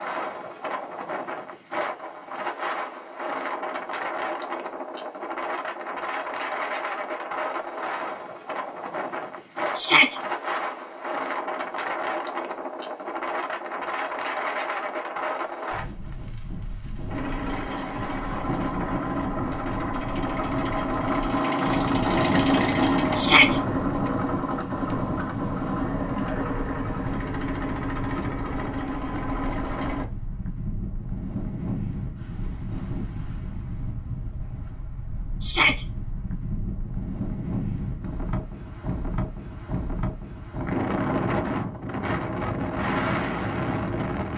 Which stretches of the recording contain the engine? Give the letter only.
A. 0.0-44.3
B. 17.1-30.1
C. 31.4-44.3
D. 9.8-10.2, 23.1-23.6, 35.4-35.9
B.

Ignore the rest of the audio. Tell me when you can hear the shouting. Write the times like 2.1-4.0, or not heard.
9.8-10.2, 23.1-23.6, 35.4-35.9.